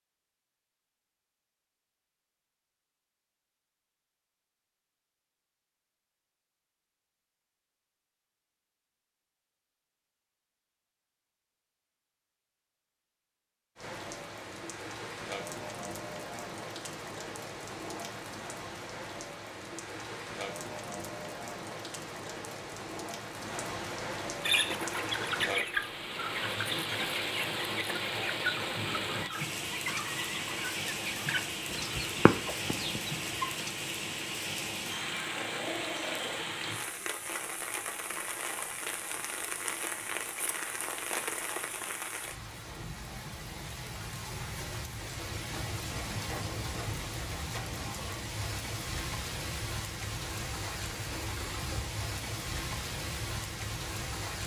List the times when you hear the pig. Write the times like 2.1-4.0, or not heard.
not heard.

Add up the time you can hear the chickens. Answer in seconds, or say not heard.
9 s.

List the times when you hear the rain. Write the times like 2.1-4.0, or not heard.
13.8-54.4.